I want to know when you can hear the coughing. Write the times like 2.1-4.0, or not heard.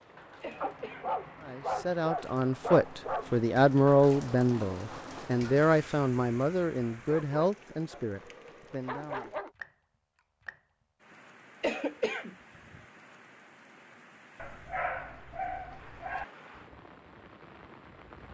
0.4-1.1, 11.6-12.8.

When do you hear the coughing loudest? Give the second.
12 s.